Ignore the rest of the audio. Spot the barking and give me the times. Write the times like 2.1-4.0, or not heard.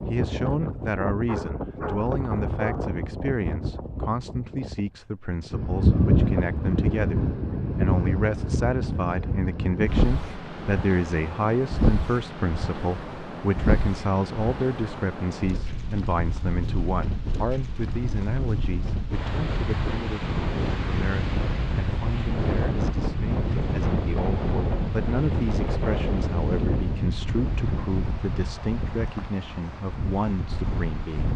1.2-3.0.